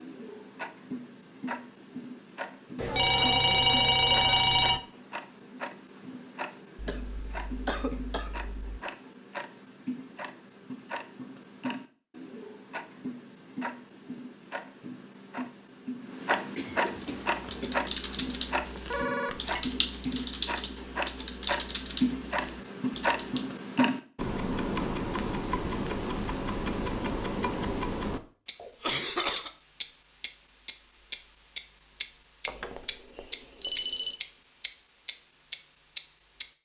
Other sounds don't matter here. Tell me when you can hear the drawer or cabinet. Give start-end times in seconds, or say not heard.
not heard.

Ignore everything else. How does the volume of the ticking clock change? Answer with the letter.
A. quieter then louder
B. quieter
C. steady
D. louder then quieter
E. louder
E.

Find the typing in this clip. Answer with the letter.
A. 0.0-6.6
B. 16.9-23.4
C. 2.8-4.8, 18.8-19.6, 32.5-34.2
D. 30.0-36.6
B.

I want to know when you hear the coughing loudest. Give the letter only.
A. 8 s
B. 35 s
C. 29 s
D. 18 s
C.